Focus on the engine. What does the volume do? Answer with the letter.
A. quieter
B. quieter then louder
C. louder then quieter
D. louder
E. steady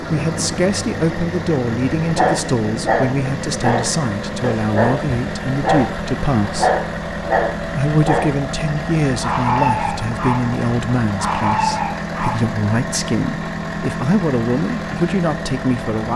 E.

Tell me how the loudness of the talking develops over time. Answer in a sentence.
The volume of the talking stays about the same.